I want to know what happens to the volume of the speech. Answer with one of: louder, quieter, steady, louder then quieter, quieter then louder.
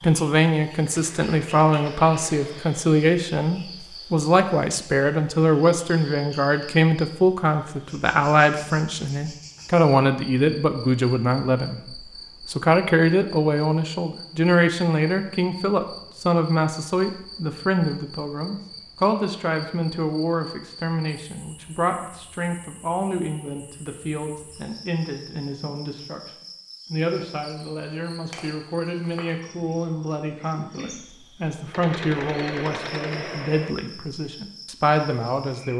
quieter.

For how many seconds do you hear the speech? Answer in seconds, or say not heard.
35 s.